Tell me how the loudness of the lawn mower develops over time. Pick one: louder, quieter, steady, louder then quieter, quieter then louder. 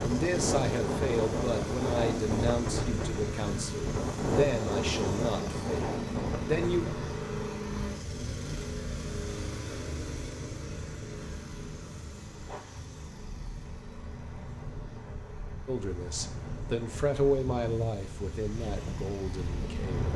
quieter.